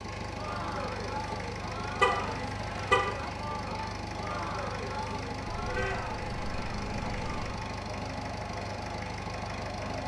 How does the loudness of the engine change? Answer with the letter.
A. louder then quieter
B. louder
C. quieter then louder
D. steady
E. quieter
D.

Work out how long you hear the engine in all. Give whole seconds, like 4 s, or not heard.
10 s.